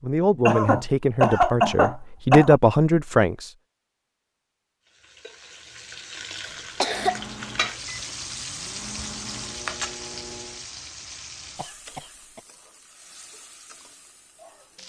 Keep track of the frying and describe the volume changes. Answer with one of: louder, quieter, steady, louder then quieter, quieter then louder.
louder then quieter.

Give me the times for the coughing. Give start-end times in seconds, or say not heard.
0.5-2.5, 6.8-7.2, 11.6-12.4.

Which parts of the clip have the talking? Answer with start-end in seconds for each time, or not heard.
0.0-3.5.